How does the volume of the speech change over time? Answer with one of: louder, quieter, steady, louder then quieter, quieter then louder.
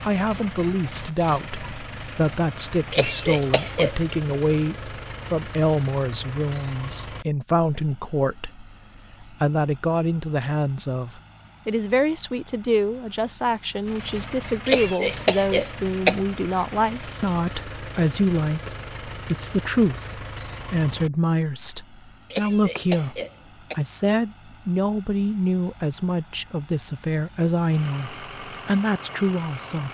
steady.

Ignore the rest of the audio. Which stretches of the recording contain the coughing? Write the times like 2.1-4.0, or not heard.
2.9-4.0, 14.7-16.1, 22.3-23.8.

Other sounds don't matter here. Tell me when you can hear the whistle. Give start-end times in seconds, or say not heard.
not heard.